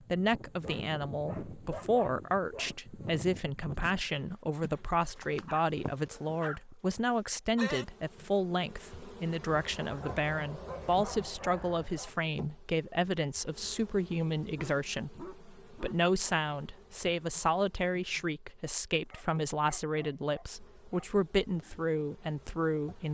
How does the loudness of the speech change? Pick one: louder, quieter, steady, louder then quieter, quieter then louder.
steady.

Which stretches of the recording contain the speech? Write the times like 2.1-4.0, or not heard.
0.1-23.0.